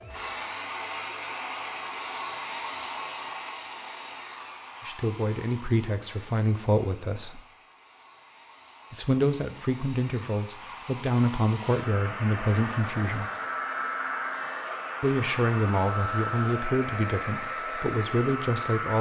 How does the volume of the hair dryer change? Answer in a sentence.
The loudness of the hair dryer goes down, then up.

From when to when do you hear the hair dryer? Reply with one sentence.
The hair dryer can be heard from 0.0 to 18.9 s.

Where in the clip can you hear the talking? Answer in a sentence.
The talking can be heard from 4.8 to 7.4 s, from 8.9 to 13.3 s and from 15.0 to 18.9 s.